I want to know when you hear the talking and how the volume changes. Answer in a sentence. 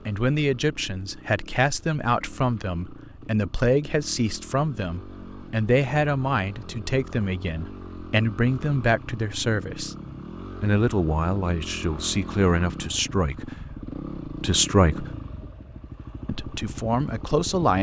You can hear the talking from 0.1 to 9.9 s, at a steady volume; from 10.6 to 15.2 s, getting quieter then louder; and briefly from 16.2 to 17.7 s.